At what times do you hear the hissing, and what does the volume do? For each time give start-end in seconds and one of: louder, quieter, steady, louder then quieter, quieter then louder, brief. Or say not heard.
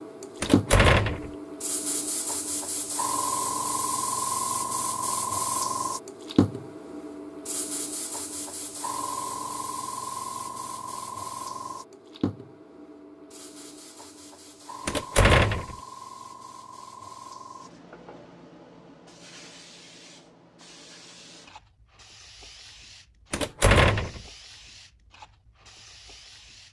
0.0-26.6 quieter.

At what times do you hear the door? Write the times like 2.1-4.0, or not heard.
0.4-1.3, 14.8-15.8, 23.3-24.2.